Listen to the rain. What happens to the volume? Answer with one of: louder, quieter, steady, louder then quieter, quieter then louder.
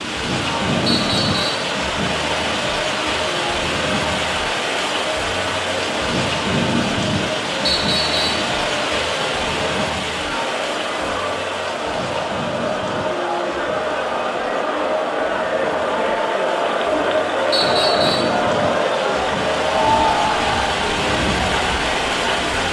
quieter then louder.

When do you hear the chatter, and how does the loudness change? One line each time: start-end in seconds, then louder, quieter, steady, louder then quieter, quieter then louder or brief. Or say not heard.
0.2-22.6 louder.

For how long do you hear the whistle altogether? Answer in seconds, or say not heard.
2 s.